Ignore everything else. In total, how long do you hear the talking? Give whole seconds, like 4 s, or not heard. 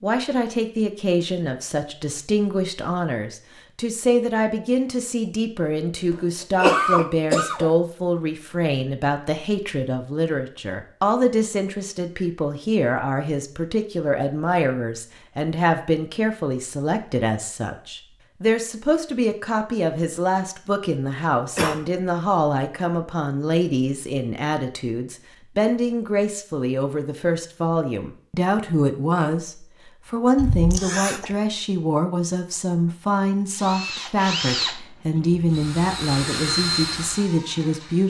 38 s.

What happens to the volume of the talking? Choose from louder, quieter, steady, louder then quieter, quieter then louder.
steady.